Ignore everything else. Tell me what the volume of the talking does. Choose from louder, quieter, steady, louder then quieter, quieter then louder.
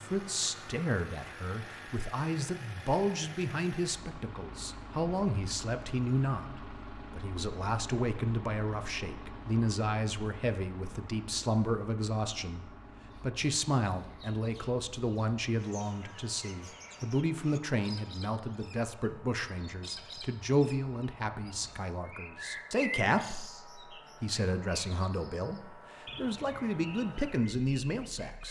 steady.